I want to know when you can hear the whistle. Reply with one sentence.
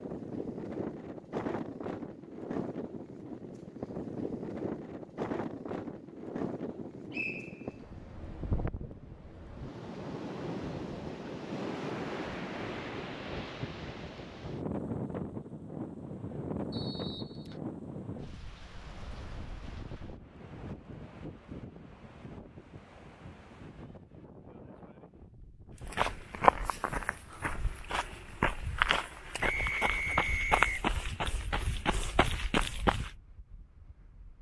You can hear the whistle from 7.1 to 7.9 s, from 16.7 to 17.6 s and from 29.4 to 30.9 s.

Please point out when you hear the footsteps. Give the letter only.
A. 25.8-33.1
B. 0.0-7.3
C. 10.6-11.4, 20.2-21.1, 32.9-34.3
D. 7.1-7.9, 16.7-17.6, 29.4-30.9
A.